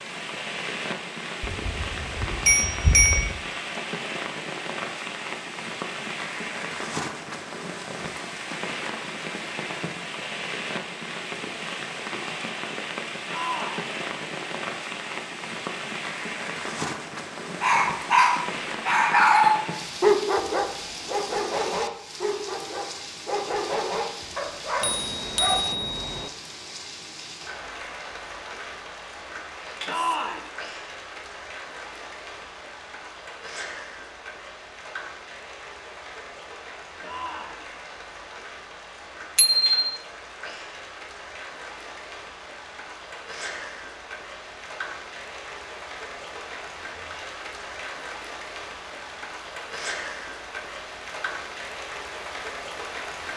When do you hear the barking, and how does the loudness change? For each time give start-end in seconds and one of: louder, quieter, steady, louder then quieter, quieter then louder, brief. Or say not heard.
17.6-25.7 quieter.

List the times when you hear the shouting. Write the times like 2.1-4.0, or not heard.
13.2-13.9, 29.9-30.5, 37.0-37.6.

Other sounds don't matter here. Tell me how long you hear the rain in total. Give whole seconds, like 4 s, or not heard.
53 s.